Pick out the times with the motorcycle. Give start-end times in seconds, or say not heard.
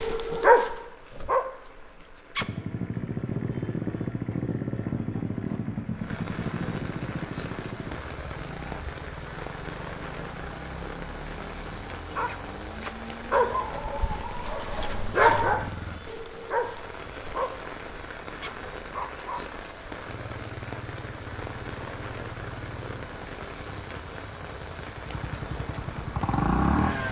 2.4-13.8, 20.1-27.0.